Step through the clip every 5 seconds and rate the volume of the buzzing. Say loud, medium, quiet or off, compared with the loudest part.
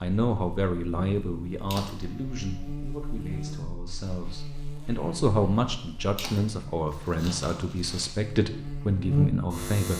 medium, loud.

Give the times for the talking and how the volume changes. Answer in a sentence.
The talking can be heard from 0.0 to 9.9 s, getting quieter then louder.